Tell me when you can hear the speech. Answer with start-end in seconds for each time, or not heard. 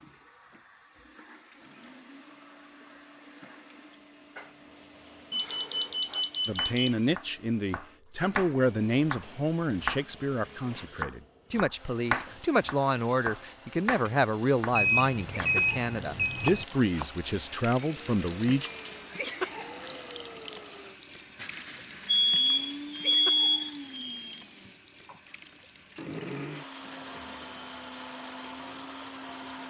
6.5-18.7.